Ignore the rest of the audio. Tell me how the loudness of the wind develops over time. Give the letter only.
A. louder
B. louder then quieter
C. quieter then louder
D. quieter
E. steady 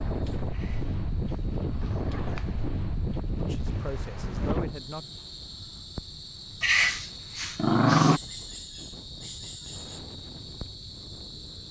C.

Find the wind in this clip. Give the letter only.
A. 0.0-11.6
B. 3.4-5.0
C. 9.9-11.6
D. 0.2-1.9
A.